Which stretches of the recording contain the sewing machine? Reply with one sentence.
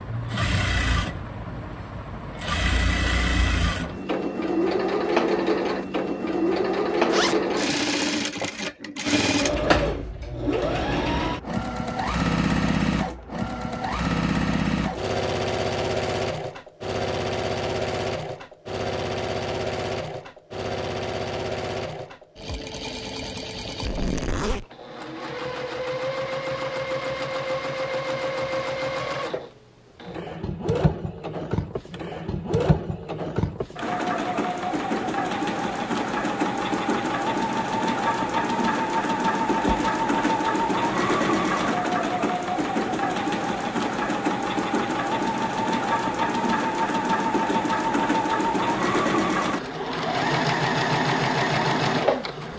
The sewing machine can be heard from 0.0 to 52.5 s.